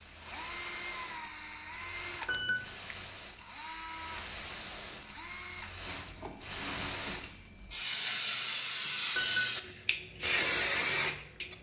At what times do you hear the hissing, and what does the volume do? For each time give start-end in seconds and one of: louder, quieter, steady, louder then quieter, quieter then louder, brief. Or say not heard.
0.0-11.5 louder.